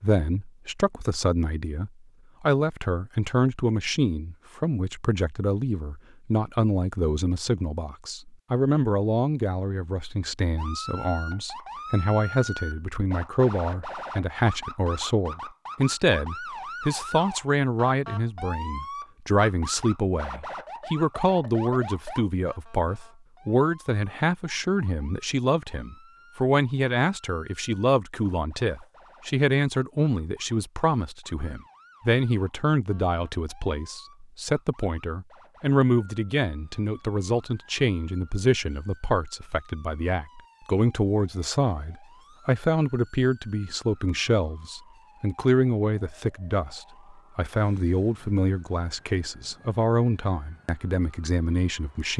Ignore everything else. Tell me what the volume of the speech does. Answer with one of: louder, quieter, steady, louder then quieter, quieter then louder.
steady.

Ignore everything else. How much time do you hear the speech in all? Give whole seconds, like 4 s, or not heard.
52 s.